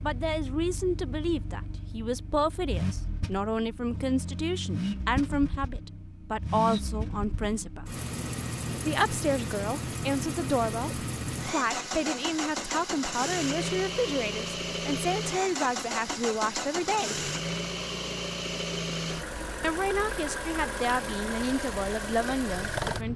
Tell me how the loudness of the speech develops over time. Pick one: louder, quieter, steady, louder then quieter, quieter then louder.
steady.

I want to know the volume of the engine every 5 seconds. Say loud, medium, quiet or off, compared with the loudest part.
medium, loud, loud, loud, loud.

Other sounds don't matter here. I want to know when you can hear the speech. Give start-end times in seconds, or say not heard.
0.0-7.8, 8.8-17.3, 19.6-23.1.